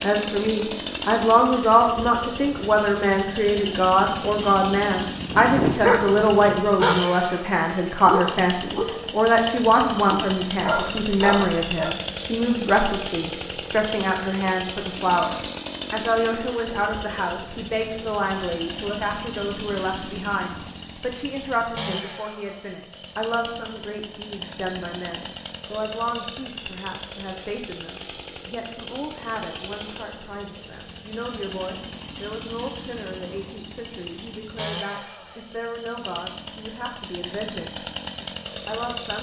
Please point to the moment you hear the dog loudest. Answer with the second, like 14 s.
6 s.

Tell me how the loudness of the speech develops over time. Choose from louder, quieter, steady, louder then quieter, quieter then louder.
quieter.